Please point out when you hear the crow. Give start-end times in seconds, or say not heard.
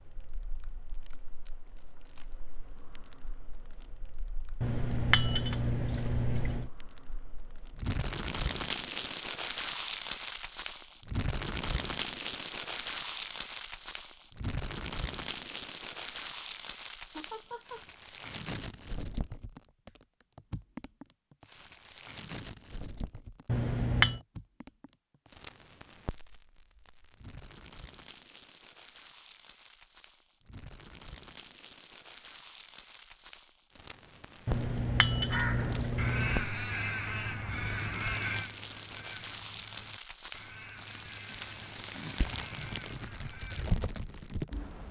35.2-43.7.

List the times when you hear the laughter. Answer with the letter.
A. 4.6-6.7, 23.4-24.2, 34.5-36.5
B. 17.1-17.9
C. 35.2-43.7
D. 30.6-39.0
B.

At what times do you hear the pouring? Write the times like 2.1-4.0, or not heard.
4.6-6.7, 23.4-24.2, 34.5-36.5.